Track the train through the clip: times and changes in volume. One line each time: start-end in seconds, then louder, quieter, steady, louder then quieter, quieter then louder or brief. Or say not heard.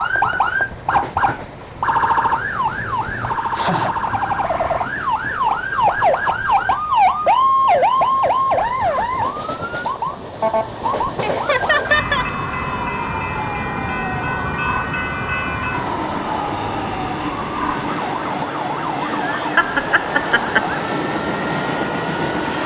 0.0-22.6 louder.